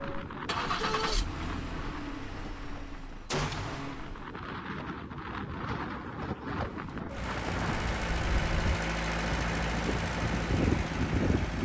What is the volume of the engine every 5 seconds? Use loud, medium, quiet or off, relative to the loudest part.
medium, loud, loud.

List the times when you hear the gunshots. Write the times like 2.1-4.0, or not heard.
3.3-3.9.